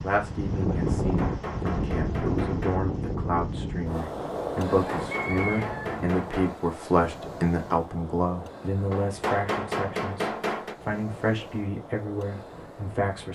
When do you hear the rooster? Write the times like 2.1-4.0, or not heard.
4.8-6.0.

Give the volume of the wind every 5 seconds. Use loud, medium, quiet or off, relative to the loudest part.
loud, medium, quiet.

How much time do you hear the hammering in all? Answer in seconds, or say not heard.
6 s.